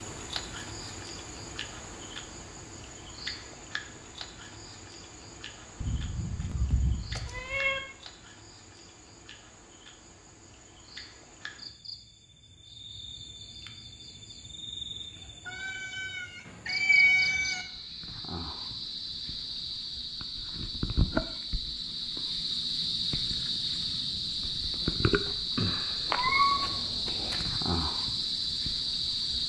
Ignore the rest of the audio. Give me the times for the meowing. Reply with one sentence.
You can hear the meowing from 5.8 to 7.8 s, from 15.4 to 17.6 s and from 26.1 to 27.4 s.